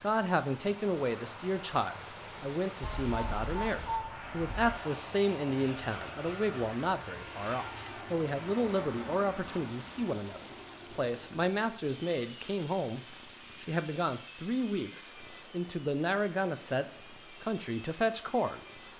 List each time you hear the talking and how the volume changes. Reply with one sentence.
You can hear the talking from 0.0 to 18.6 s, at a steady volume.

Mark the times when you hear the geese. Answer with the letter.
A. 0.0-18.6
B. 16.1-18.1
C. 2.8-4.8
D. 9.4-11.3
C.